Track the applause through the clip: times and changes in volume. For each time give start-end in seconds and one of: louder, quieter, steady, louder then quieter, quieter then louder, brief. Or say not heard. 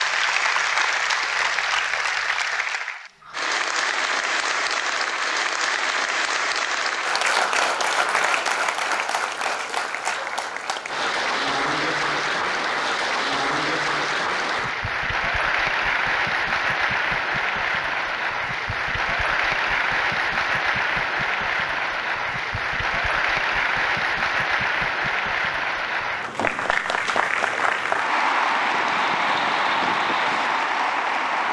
0.0-31.4 steady.